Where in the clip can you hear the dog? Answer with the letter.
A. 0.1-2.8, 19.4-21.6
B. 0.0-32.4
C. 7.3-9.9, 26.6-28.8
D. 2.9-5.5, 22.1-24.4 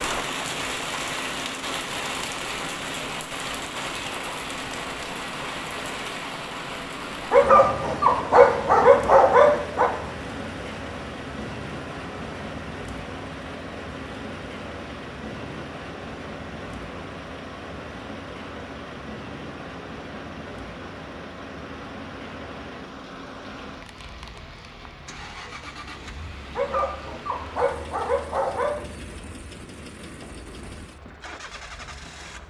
C.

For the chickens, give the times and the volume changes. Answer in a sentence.
The chickens can't be heard in this clip.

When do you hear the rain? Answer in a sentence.
The rain can be heard from 0.0 to 32.4 s.